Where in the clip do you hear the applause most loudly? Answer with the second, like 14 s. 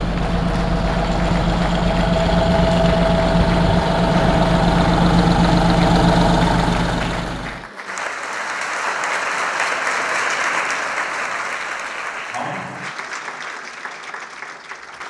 10 s.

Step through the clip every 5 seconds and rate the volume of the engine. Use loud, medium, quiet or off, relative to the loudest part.
loud, loud, off.